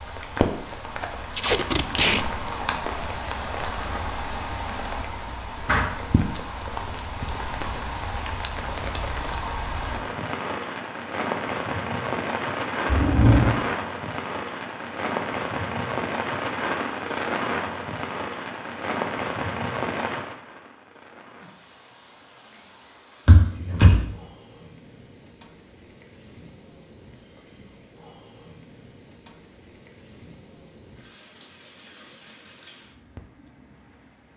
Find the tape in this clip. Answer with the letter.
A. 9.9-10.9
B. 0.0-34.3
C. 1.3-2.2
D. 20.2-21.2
C.